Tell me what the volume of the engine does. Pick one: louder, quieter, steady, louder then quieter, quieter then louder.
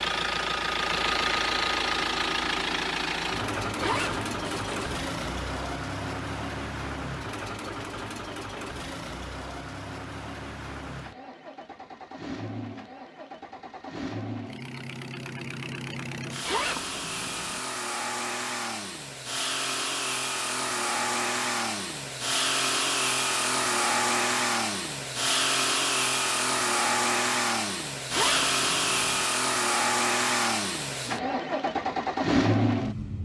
quieter then louder.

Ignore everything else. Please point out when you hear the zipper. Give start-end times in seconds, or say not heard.
3.8-5.0, 16.4-17.6, 28.1-29.2.